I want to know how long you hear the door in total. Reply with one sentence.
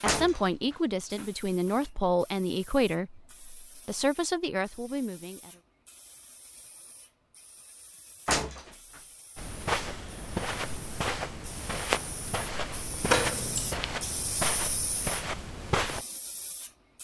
You can hear the door for 3 seconds altogether.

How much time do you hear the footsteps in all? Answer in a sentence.
The footsteps can be heard for 7 seconds in total.